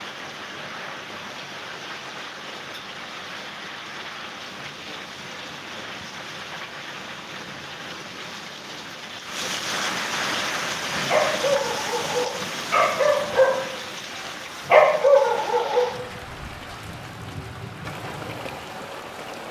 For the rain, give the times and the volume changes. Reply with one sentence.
You can hear the rain from 0.0 to 19.4 s, getting louder then quieter.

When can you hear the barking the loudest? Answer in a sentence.
The loudest moment of the barking is at 15 seconds.